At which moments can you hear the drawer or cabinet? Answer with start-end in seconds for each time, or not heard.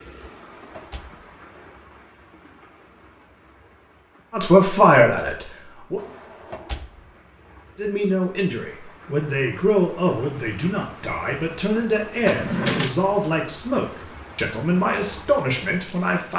0.2-1.2, 6.0-7.2, 12.2-12.9.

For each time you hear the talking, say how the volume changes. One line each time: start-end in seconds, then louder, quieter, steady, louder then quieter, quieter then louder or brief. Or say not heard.
4.3-6.0 brief
7.8-16.3 steady.